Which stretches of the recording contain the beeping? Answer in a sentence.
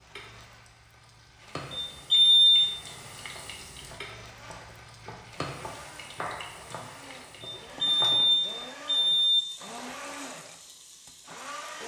You can hear the beeping from 1.7 to 2.7 s and from 7.4 to 9.4 s.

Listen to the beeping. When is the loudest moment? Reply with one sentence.
The loudest moment of the beeping is at 2 seconds.